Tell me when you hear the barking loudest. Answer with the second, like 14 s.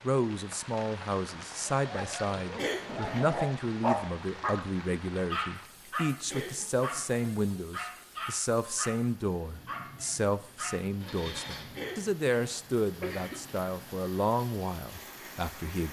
4 s.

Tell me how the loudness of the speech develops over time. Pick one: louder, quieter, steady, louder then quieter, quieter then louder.
steady.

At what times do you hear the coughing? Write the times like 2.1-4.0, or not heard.
2.5-3.2, 6.3-7.0, 11.8-13.4.